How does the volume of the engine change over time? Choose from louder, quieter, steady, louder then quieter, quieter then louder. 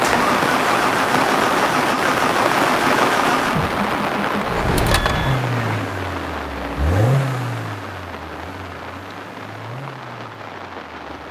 quieter.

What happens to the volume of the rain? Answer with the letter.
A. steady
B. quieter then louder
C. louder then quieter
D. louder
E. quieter
E.